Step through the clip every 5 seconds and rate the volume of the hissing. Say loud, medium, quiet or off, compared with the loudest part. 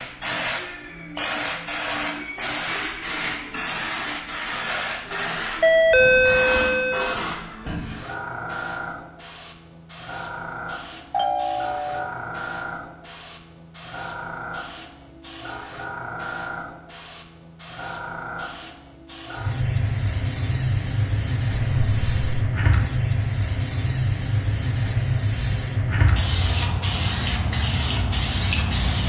loud, medium, medium, medium, loud, loud.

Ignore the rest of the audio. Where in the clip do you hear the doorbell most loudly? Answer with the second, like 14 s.
6 s.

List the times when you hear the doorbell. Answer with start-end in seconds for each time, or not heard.
5.6-7.2, 11.1-12.1, 21.6-22.4.